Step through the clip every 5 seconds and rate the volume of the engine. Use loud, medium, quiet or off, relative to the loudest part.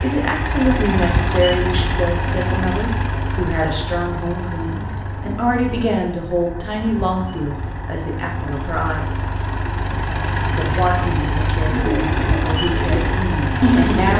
loud, medium, loud.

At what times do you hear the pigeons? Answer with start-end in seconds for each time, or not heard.
11.7-14.1.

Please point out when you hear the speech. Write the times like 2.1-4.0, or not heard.
0.0-9.1, 10.6-14.1.